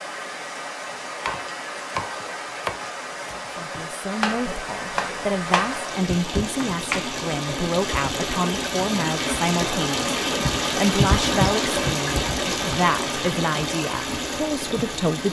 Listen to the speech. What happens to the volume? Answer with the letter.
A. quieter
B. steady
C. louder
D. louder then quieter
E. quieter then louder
B.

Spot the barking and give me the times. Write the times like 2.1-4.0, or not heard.
not heard.